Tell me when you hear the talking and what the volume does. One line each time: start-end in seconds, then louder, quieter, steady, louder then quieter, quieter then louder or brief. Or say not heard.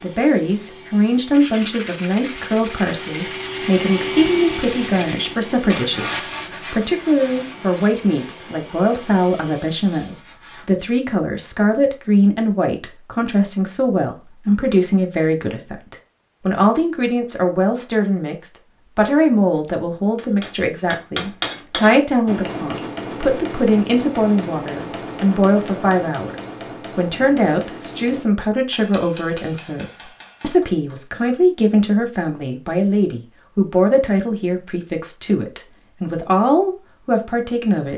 0.0-37.9 steady.